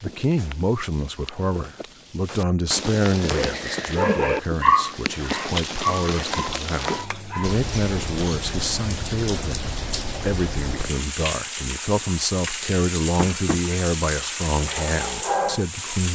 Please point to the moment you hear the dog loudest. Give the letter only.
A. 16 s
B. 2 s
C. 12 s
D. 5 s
D.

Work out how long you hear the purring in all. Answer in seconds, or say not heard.
not heard.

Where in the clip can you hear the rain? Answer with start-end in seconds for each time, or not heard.
0.0-16.1.